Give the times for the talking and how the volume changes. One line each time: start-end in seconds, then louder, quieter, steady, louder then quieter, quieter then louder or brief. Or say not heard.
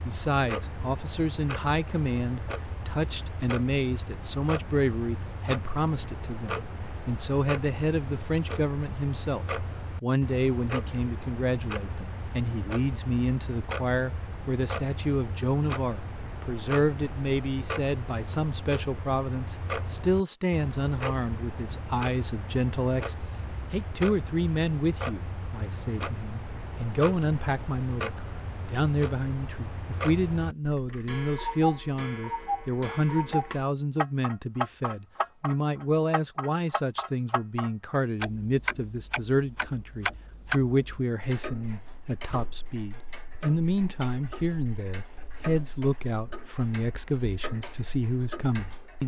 0.0-49.0 steady.